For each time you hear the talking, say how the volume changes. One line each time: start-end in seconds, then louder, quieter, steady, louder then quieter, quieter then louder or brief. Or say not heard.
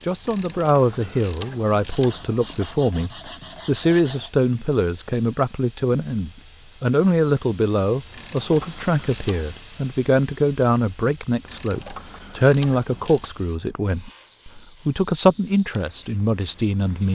0.0-17.0 steady.